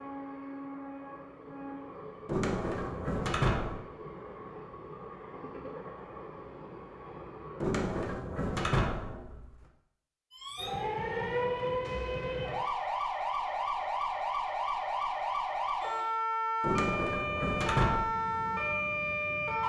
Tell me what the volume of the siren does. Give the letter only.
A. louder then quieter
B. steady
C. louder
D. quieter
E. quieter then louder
B.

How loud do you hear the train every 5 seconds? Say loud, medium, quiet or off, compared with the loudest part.
loud, loud, off, loud.